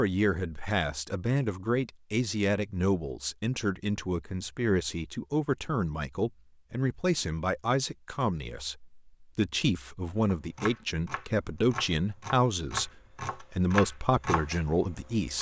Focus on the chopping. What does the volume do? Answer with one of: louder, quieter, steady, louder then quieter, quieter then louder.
louder.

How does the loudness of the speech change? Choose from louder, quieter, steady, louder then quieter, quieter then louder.
steady.